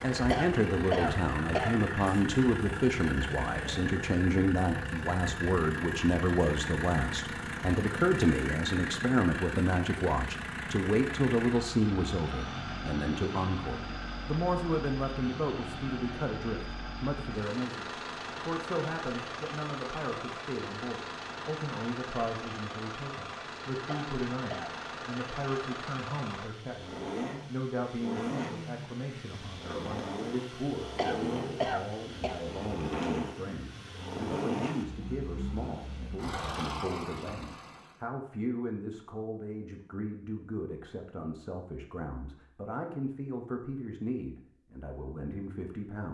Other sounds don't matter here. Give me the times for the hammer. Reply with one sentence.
You can't hear the hammer here.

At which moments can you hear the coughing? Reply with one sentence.
You can hear the coughing from 0.3 to 1.8 s, from 23.9 to 24.8 s and from 30.9 to 32.4 s.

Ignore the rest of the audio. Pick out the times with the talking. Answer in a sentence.
You can hear the talking from 0.0 to 46.0 s.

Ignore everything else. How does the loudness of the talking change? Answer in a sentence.
The volume of the talking goes down.